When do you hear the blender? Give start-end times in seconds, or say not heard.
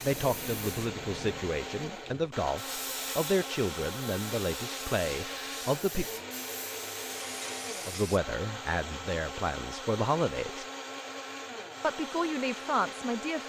0.0-13.4.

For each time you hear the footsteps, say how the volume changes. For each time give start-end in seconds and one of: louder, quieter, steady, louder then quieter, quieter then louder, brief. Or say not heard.
not heard.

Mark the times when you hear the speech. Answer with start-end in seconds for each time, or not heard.
0.0-6.0, 7.8-10.7, 11.8-13.4.